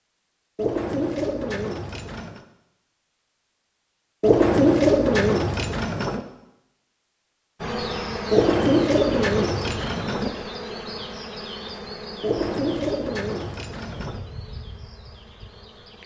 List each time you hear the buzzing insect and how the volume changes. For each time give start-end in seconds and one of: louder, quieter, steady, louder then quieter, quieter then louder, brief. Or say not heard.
7.6-16.0 quieter.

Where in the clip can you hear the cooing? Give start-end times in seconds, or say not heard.
0.6-2.4, 4.2-6.2, 8.3-10.3, 12.2-14.2.